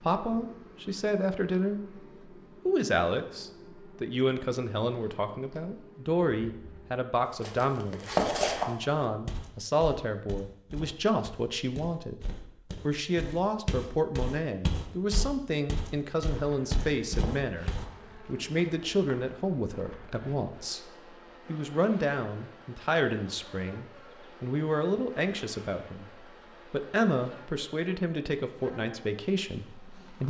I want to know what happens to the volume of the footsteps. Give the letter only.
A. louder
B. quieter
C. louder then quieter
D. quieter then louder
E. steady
D.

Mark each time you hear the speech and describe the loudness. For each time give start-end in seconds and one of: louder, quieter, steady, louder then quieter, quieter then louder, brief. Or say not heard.
0.0-2.0 brief
2.6-30.2 steady.